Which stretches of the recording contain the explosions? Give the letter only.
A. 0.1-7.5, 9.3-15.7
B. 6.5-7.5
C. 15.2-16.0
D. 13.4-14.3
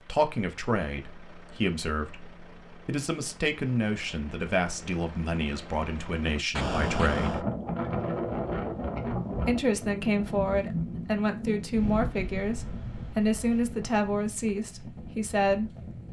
B.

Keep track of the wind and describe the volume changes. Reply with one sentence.
The loudness of the wind goes down.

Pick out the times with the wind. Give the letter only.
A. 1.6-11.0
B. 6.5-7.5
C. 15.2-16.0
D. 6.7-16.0
D.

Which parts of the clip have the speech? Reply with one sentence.
You can hear the speech from 0.1 to 7.5 s and from 9.3 to 15.7 s.